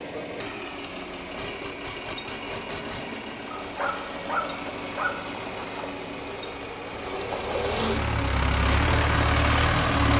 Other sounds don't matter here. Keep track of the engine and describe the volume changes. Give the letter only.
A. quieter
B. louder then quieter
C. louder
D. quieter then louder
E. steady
C.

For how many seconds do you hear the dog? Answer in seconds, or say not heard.
2 s.